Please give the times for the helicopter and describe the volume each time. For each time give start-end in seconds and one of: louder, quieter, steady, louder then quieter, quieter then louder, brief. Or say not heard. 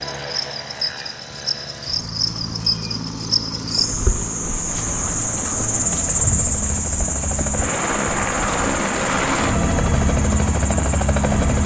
0.0-11.6 louder.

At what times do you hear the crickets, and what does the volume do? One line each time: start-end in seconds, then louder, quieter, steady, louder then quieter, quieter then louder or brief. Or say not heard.
0.0-11.6 louder then quieter.